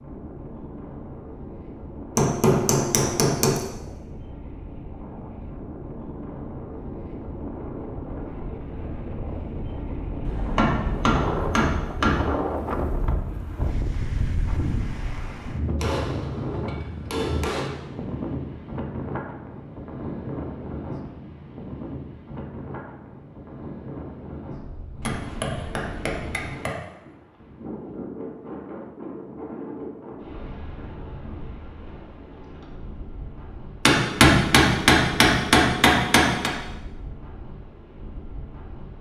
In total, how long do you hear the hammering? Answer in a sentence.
The hammering can be heard for 10 seconds in total.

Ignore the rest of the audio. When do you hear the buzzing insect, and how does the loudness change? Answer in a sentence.
You can't hear the buzzing insect here.